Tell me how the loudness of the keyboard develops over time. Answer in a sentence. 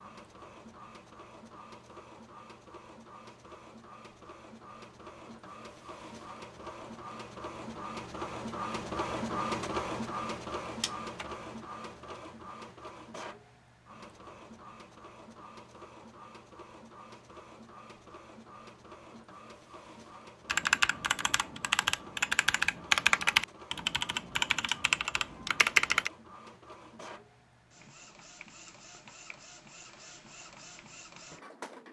The volume of the keyboard goes up, then down.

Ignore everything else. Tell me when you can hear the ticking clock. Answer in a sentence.
You can't hear the ticking clock here.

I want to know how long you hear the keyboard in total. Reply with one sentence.
You can hear the keyboard for 6 seconds altogether.